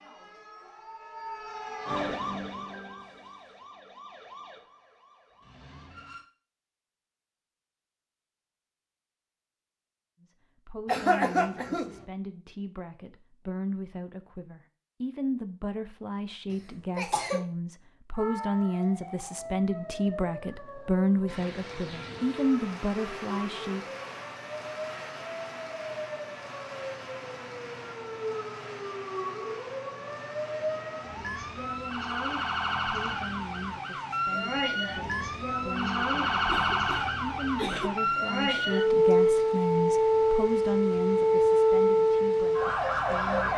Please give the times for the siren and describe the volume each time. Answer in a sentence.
You can hear the siren from 0.0 to 6.2 s, getting louder then quieter; and from 18.1 to 43.5 s, getting louder.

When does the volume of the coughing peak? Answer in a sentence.
The loudest moment of the coughing is at 11 seconds.